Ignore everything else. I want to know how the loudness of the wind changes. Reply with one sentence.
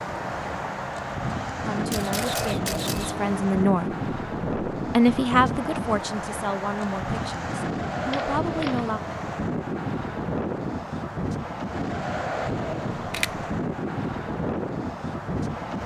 The loudness of the wind stays about the same.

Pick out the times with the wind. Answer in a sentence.
You can hear the wind from 0.0 to 15.8 s.